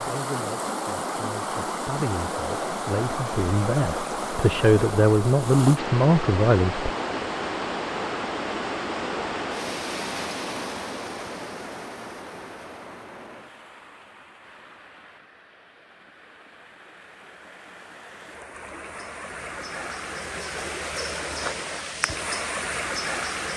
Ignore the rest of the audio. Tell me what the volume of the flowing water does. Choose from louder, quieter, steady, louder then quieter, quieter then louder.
quieter then louder.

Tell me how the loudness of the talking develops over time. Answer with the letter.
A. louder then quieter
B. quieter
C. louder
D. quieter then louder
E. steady
C.